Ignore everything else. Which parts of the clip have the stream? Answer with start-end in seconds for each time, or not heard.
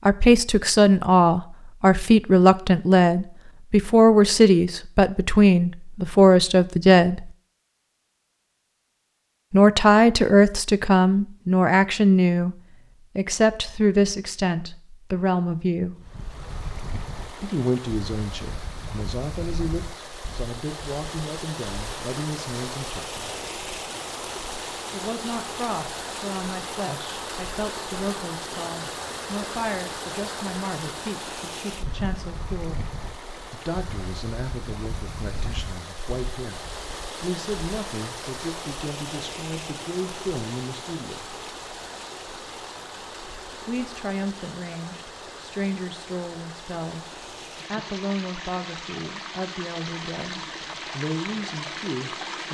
15.9-52.4.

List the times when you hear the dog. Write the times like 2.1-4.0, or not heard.
not heard.